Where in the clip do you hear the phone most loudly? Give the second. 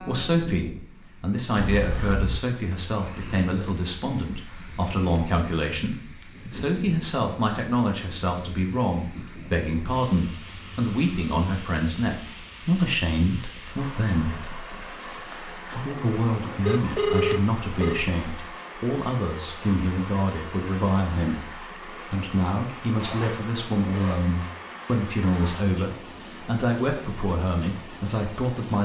17 s.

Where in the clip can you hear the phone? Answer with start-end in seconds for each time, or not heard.
1.6-2.4, 16.6-18.1.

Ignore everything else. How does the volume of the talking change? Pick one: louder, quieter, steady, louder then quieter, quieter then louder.
steady.